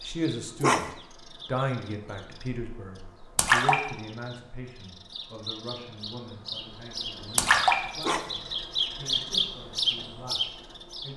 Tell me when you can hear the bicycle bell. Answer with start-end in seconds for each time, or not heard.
not heard.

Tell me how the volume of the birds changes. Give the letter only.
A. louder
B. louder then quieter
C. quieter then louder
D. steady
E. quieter
A.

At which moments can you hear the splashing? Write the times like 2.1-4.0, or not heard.
3.4-3.8, 7.3-7.8.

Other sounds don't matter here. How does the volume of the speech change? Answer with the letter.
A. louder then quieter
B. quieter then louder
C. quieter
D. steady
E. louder
C.